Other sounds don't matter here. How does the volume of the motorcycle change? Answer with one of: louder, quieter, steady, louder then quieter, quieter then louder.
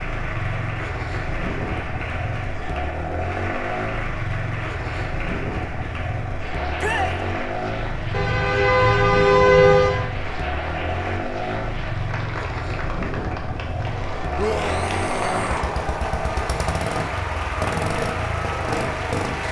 steady.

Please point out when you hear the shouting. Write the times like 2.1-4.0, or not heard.
6.8-7.2, 14.3-15.7.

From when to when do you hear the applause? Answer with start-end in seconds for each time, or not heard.
0.0-19.4.